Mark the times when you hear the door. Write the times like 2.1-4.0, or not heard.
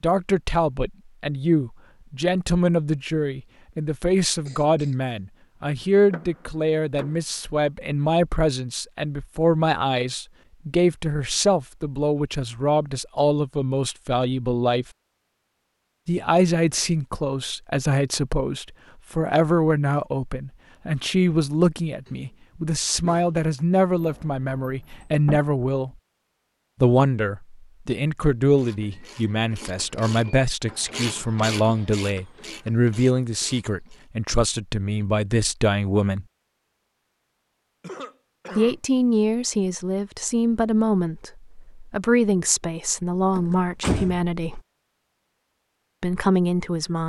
6.0-7.2, 23.9-25.4, 43.4-44.2.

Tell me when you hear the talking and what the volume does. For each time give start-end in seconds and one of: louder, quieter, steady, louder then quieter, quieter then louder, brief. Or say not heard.
0.0-14.8 steady
16.1-25.9 steady
26.8-36.2 steady
38.5-44.6 quieter then louder
46.0-47.0 brief.